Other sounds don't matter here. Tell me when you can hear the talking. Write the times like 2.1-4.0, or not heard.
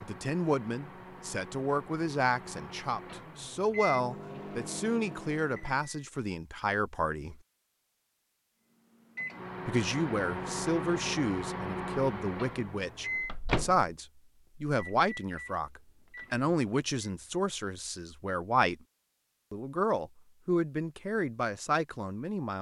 0.0-7.3, 9.7-18.8, 19.5-22.5.